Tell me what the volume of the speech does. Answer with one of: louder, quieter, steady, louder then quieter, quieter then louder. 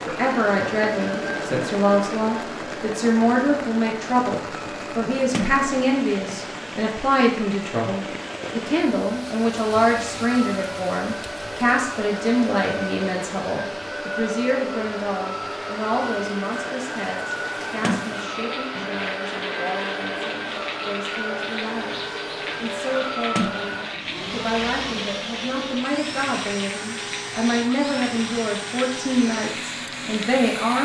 quieter then louder.